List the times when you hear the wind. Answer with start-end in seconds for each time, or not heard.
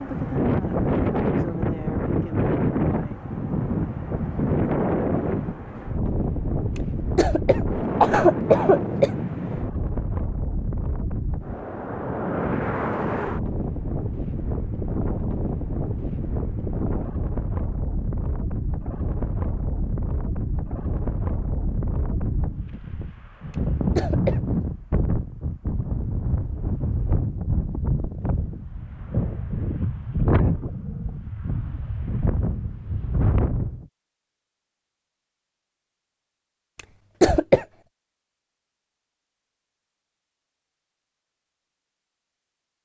0.0-33.9.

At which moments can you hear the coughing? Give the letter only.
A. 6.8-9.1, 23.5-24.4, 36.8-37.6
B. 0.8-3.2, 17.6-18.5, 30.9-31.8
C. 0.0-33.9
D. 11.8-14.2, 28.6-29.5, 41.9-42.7
A.